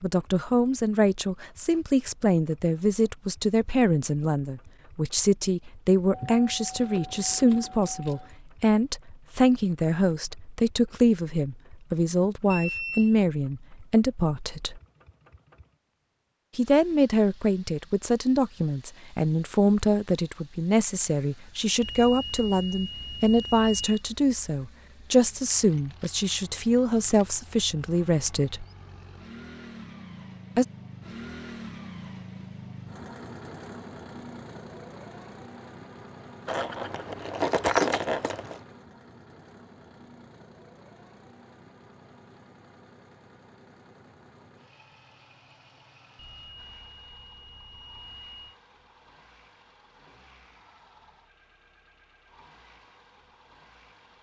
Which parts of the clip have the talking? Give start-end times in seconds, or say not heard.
0.0-14.8, 16.6-28.6.